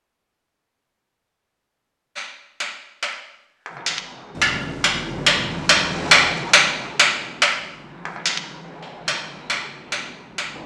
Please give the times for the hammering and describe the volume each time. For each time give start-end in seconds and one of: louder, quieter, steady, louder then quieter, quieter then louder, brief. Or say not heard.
2.1-10.6 louder then quieter.